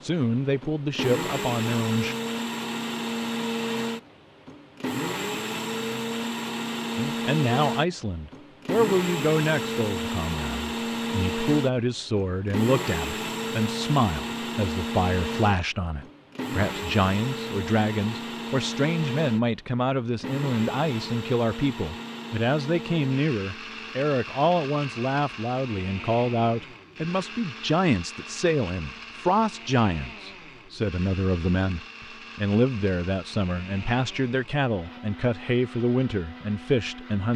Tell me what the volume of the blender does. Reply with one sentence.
The volume of the blender goes down.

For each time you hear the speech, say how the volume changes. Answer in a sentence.
The speech can be heard briefly from 0.0 to 2.1 s; and from 7.0 to 37.3 s, at a steady volume.